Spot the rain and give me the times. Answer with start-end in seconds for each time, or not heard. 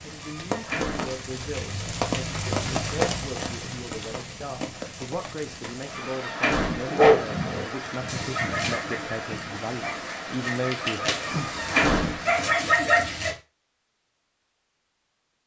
0.0-12.6.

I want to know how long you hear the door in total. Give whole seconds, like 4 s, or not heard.
3 s.